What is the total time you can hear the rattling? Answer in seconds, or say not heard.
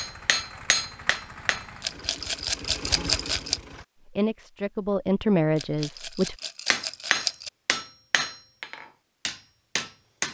4 s.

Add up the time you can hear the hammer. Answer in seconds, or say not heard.
5 s.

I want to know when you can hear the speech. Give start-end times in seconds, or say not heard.
4.0-6.3.